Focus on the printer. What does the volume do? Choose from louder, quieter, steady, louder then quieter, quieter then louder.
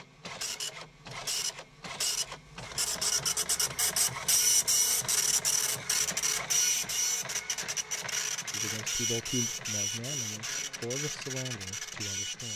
louder then quieter.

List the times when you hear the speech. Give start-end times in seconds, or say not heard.
8.5-12.5.